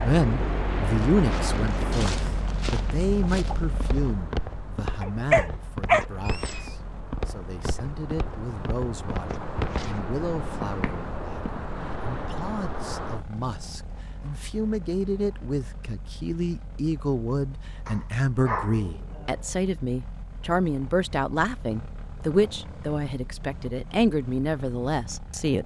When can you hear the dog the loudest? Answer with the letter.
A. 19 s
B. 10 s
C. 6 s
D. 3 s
C.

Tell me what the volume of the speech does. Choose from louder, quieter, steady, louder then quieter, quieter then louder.
quieter then louder.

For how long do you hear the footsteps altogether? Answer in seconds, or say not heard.
10 s.